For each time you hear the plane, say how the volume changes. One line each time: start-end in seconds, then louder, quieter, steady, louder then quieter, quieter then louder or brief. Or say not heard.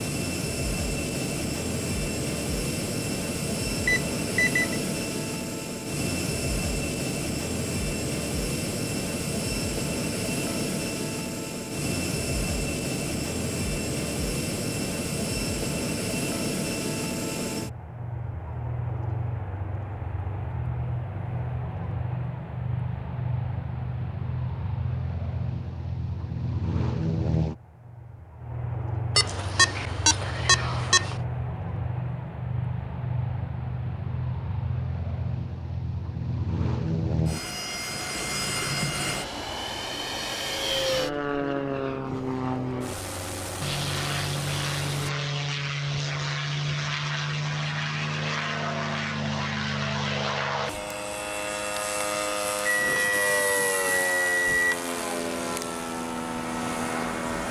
0.0-57.4 steady.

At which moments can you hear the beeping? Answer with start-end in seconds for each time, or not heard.
3.9-4.8, 29.1-31.1, 52.6-54.8.